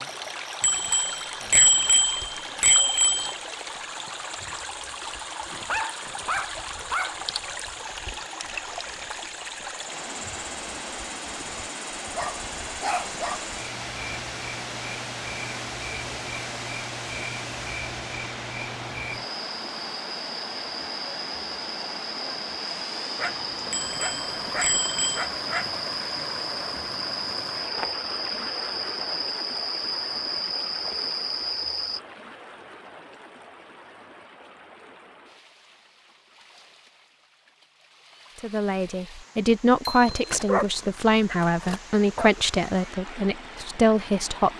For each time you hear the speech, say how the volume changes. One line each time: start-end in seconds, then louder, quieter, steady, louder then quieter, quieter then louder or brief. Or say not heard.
38.4-44.5 steady.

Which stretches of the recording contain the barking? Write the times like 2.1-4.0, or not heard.
5.5-7.2, 12.1-13.4, 23.1-25.8, 40.0-42.3.